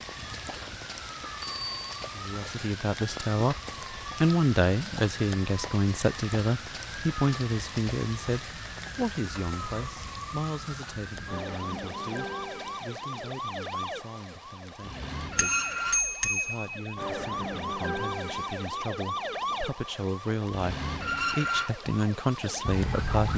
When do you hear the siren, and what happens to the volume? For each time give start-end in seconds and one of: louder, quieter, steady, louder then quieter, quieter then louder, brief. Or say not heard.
0.0-23.3 louder.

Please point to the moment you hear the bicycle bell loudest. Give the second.
16 s.